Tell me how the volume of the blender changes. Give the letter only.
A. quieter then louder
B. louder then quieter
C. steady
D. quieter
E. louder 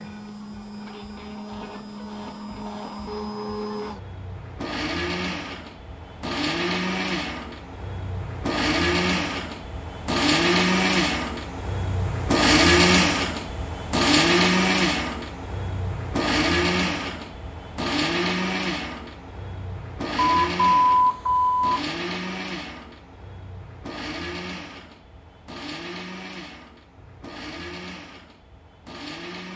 B.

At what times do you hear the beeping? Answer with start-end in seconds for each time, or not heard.
20.2-21.8.